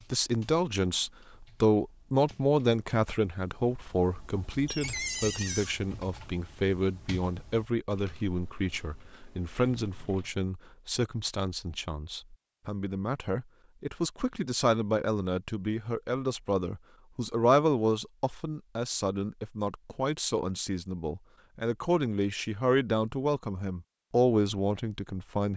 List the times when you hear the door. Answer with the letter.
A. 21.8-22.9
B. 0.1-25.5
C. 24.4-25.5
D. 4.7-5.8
D.